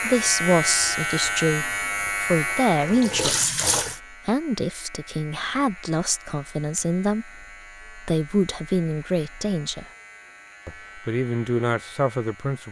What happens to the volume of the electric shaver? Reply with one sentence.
The volume of the electric shaver goes down.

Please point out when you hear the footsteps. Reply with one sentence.
The footsteps can't be heard in this clip.